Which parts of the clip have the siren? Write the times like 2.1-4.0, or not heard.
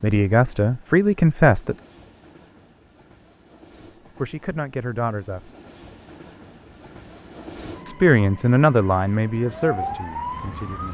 9.3-10.8.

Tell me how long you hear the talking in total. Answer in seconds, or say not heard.
6 s.